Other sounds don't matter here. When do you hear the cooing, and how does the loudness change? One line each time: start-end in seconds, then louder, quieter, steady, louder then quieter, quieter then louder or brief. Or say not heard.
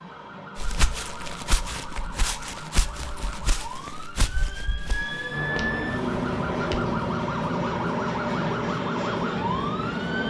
not heard.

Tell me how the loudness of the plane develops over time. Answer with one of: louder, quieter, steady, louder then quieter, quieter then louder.
steady.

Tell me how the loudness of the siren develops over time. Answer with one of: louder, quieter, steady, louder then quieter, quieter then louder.
louder.